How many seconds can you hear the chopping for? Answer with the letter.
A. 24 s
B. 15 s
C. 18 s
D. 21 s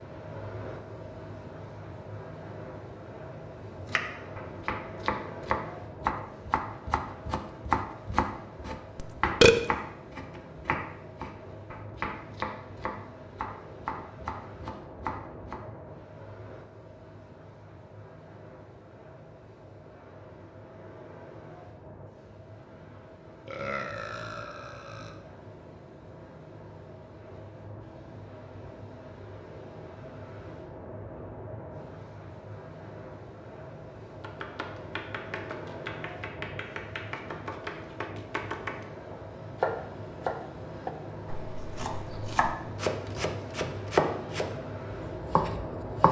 A.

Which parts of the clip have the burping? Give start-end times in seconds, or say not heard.
8.9-9.6, 23.4-25.1.